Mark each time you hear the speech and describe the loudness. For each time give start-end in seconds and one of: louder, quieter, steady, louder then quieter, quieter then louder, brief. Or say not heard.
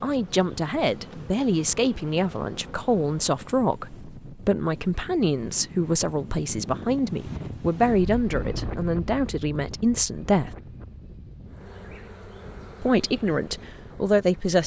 0.0-10.5 steady
12.8-14.6 brief.